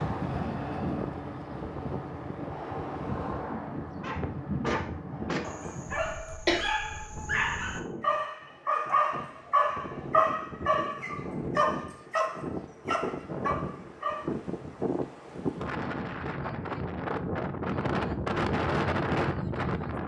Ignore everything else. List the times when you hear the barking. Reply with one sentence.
The barking can be heard from 4.0 to 14.3 s.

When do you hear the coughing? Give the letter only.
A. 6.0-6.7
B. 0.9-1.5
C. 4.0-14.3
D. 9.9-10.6
A.